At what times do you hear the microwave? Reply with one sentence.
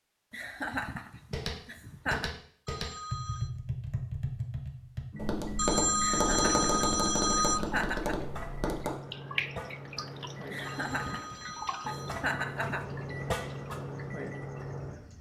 The microwave can be heard from 5.1 to 15.1 s.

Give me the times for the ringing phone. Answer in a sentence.
You can hear the ringing phone from 2.6 to 3.5 s, from 5.5 to 7.6 s and from 10.6 to 12.2 s.